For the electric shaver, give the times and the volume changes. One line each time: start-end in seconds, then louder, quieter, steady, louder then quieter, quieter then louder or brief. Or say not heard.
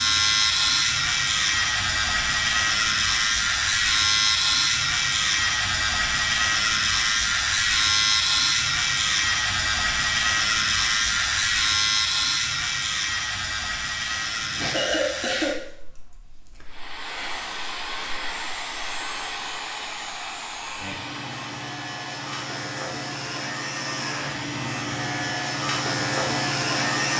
0.0-27.1 quieter then louder.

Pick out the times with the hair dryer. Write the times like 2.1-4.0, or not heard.
16.6-27.1.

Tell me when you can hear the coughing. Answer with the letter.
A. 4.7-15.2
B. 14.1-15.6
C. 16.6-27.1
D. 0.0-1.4
B.